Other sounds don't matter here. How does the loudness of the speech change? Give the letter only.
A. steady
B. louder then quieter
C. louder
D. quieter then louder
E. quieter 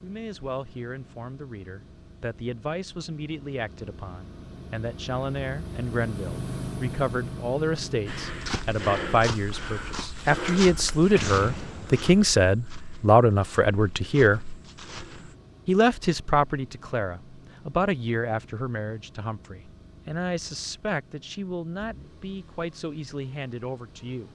B.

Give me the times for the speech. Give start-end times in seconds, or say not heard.
0.0-14.6, 15.7-24.3.